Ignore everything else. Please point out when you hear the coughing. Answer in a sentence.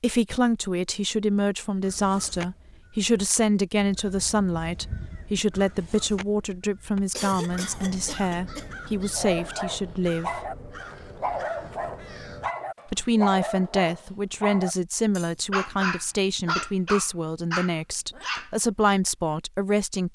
You can hear the coughing from 7.1 to 8.7 s.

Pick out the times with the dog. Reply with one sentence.
You can hear the dog from 9.2 to 18.5 s.